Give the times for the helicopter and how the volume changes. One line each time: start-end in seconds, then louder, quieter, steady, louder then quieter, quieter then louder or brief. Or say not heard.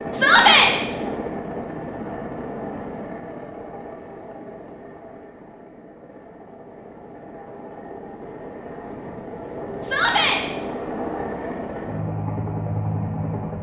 0.0-13.5 quieter then louder.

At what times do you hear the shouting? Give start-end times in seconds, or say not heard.
0.1-0.7, 9.8-10.4.